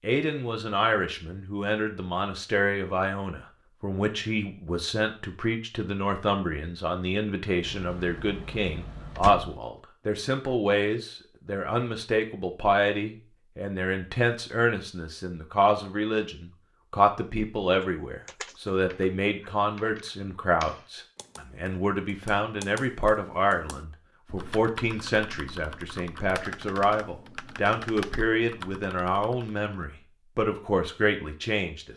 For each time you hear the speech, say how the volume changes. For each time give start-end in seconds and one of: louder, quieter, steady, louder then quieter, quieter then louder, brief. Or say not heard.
0.0-31.9 steady.